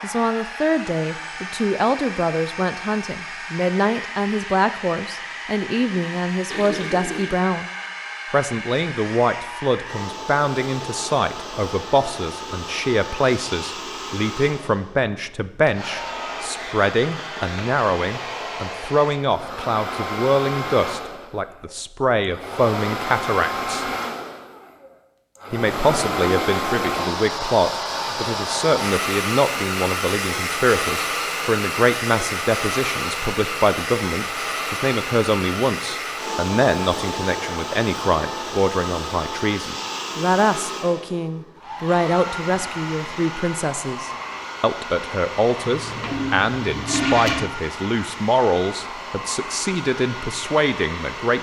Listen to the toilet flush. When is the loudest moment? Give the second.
47 s.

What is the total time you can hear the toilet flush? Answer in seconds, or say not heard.
4 s.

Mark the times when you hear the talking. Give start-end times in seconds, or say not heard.
0.0-7.7, 8.3-23.9, 25.5-51.3.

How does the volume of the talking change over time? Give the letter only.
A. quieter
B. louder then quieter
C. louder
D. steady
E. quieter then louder
D.